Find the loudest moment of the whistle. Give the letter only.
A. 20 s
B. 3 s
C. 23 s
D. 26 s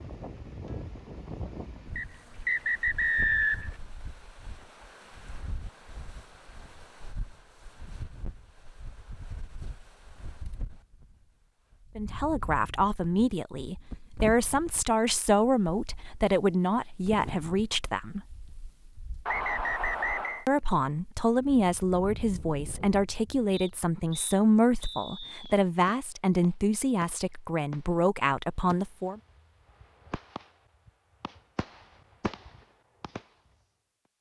B.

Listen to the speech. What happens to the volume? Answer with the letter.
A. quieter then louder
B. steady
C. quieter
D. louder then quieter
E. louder
B.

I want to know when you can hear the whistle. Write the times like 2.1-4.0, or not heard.
1.9-3.8, 19.2-20.4, 23.5-25.6.